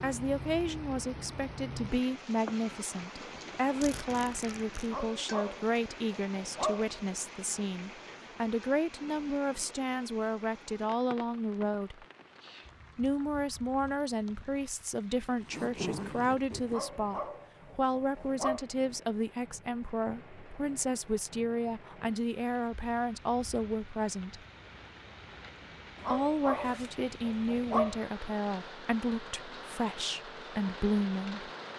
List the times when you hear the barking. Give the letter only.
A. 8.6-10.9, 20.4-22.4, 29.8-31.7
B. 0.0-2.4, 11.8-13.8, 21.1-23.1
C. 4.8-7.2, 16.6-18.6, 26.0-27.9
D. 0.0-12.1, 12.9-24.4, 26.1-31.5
C.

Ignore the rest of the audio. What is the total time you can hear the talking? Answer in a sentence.
You can hear the talking for 29 seconds altogether.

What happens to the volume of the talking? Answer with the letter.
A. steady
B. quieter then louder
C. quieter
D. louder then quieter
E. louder
A.